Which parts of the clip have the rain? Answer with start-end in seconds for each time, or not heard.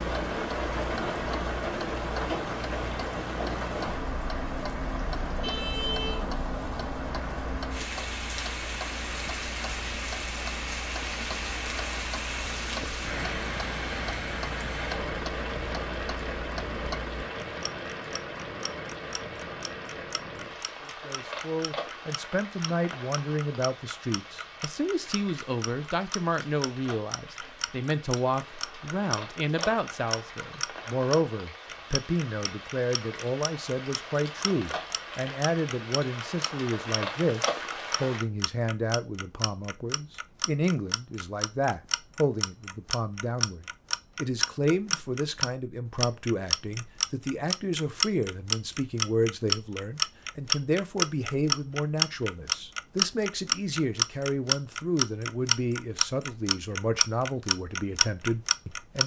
0.0-38.2.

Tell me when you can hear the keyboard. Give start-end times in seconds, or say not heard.
not heard.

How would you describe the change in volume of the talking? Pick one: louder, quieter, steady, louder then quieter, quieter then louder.
steady.